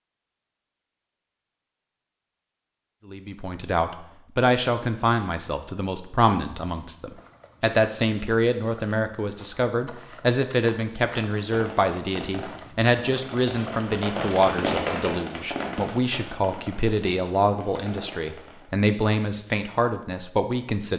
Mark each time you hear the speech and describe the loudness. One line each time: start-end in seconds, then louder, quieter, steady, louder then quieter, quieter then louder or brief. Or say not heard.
3.0-20.9 steady.